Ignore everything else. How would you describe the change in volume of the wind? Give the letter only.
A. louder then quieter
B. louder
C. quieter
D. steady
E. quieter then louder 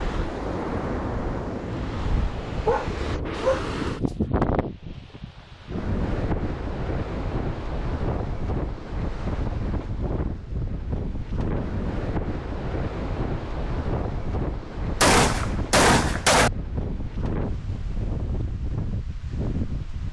D.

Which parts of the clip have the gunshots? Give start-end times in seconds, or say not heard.
14.9-16.5.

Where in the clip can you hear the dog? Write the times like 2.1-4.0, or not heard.
2.6-4.2.